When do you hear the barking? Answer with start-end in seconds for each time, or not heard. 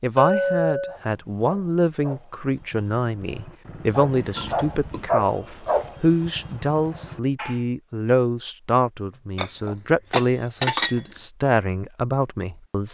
0.8-7.7.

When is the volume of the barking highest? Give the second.
5 s.